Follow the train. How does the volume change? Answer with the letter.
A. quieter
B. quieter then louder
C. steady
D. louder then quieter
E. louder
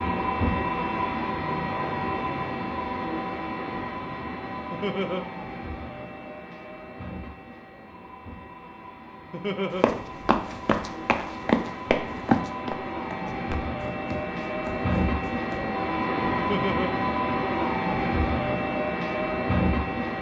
B.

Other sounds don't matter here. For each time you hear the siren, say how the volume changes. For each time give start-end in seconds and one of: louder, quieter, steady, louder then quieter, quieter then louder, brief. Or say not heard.
not heard.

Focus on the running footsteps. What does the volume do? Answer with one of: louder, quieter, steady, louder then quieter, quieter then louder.
quieter.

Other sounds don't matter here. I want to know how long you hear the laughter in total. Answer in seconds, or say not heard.
2 s.